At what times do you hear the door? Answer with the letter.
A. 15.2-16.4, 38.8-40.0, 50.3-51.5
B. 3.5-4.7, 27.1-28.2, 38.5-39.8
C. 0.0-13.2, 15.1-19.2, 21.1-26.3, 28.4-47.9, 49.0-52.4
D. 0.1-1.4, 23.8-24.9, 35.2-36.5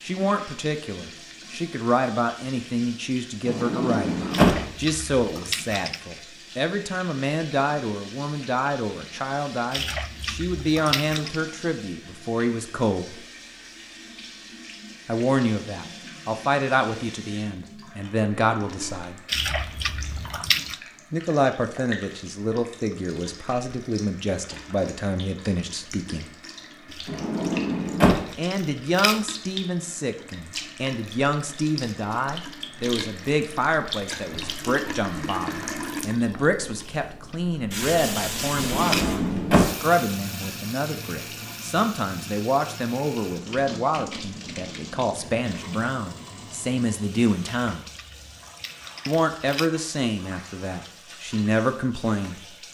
B.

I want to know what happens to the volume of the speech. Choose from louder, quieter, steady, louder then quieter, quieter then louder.
steady.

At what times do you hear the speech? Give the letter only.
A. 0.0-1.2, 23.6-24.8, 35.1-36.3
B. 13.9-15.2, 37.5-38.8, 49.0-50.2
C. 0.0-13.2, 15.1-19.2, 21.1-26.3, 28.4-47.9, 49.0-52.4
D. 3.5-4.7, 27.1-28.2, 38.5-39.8
C.